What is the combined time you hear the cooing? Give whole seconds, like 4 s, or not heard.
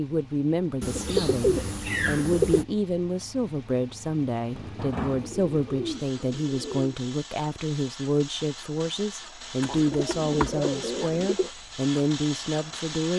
6 s.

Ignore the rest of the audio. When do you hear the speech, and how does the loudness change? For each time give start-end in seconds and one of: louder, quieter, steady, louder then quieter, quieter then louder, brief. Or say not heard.
0.0-13.1 steady.